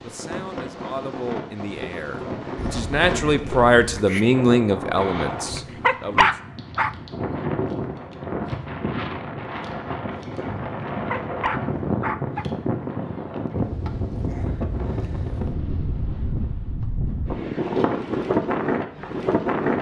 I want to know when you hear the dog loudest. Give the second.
6 s.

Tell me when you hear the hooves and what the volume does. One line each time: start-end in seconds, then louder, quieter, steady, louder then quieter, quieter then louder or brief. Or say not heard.
not heard.